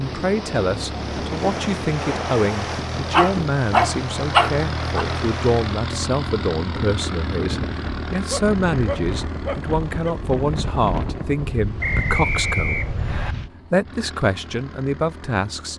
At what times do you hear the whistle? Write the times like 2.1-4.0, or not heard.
11.8-13.3.